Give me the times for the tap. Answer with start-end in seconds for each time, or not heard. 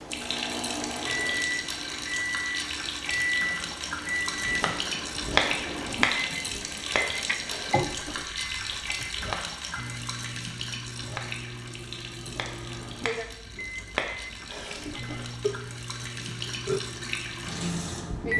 0.0-18.3.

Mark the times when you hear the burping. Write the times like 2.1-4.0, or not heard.
15.4-16.8.